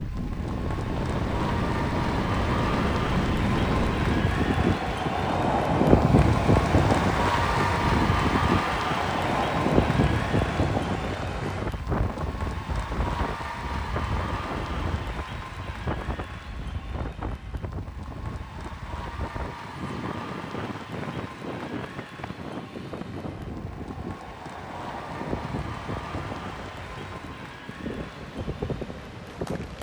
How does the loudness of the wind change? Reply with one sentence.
The volume of the wind goes down.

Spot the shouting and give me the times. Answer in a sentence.
The shouting can't be heard in this clip.